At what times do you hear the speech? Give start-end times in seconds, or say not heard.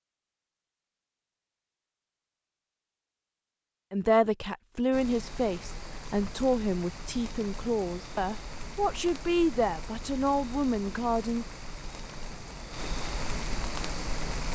3.9-11.4.